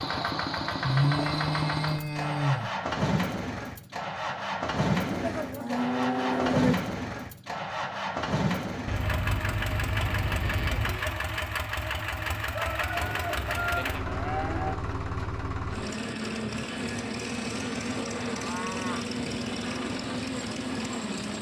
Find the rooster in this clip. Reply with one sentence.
The rooster can be heard from 12.4 to 13.8 s.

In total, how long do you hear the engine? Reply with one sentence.
You can hear the engine for 21 seconds altogether.